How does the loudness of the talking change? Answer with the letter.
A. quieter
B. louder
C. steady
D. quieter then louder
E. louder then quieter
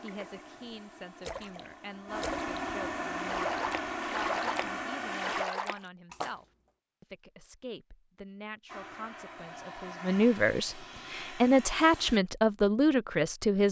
B.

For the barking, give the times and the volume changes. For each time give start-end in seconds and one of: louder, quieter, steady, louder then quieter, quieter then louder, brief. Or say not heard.
not heard.